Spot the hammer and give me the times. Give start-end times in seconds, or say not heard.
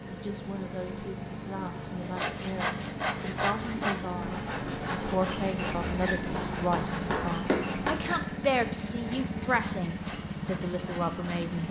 6.3-8.0.